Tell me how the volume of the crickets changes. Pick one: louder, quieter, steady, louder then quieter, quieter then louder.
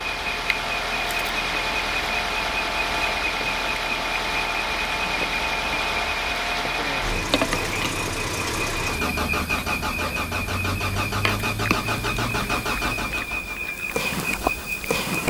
steady.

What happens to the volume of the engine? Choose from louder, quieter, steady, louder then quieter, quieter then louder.
steady.